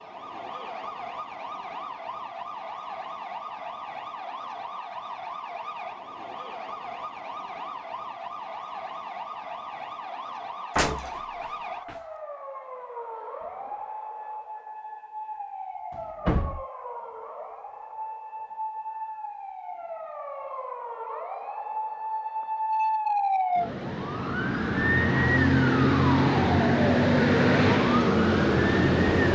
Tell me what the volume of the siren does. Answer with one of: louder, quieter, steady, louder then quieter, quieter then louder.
louder.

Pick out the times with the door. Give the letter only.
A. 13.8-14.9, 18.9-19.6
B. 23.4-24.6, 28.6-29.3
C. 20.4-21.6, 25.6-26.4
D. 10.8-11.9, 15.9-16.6
D.